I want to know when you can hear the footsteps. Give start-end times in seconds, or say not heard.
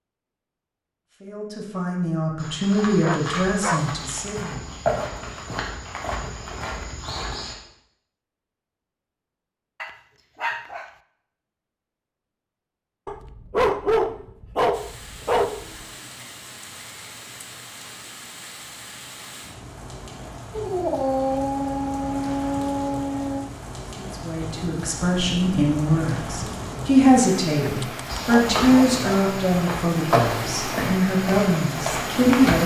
2.4-7.5, 28.1-32.6.